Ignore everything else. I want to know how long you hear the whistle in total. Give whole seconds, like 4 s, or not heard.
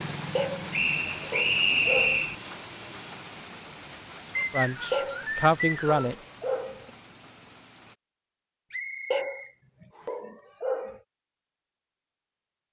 5 s.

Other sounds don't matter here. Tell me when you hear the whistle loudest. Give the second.
2 s.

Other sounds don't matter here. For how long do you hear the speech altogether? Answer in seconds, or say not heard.
2 s.